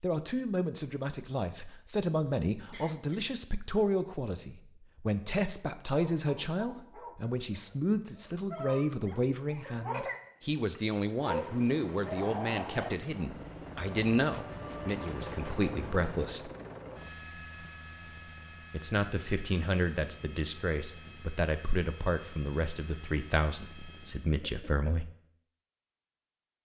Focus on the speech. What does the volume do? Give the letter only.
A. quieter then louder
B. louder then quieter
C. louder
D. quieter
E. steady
E.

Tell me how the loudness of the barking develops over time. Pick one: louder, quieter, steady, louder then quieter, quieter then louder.
louder.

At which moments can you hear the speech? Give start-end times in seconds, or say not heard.
0.0-16.5, 18.7-25.1.